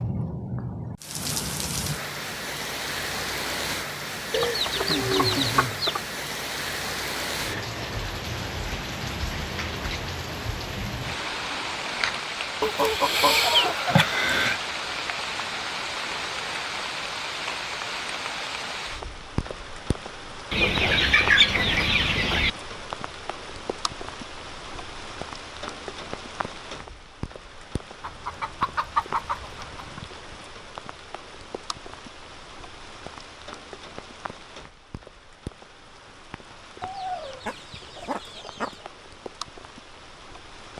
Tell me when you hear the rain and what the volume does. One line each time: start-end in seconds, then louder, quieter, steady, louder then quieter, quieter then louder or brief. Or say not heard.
0.0-40.7 quieter.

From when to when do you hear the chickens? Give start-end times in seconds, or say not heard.
4.3-6.0, 12.6-14.6, 20.5-22.5, 28.0-30.0, 36.8-38.9.